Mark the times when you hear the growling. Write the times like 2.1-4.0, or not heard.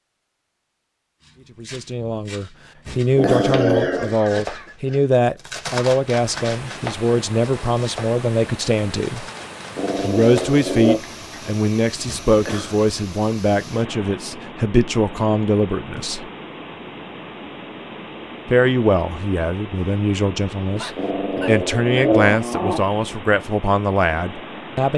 3.1-4.2, 9.8-11.0, 20.9-22.9.